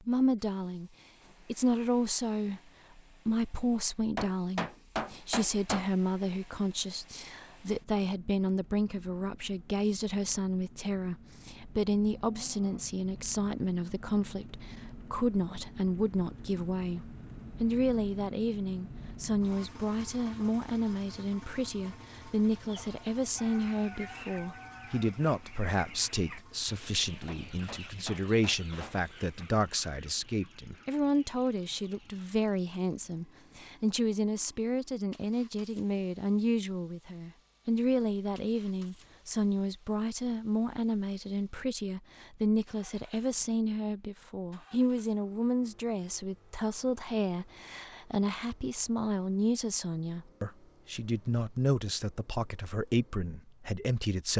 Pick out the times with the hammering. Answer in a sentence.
The hammering can be heard from 4.2 to 5.9 s and from 27.2 to 29.0 s.